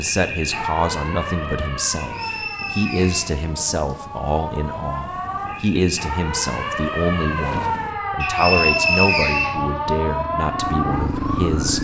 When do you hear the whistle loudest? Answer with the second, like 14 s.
9 s.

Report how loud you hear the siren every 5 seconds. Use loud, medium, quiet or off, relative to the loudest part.
medium, loud, loud.